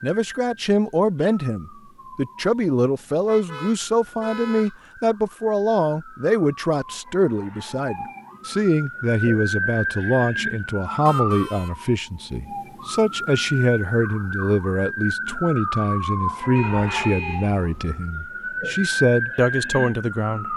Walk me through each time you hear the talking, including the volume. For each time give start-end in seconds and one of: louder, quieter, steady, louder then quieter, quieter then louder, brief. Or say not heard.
0.0-20.5 steady.